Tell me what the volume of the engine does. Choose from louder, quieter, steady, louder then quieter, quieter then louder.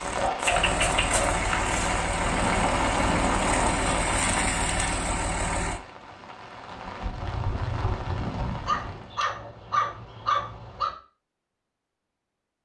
steady.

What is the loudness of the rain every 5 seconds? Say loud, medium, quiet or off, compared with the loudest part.
loud, medium, off.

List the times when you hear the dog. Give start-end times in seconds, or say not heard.
0.1-1.8, 8.7-10.9.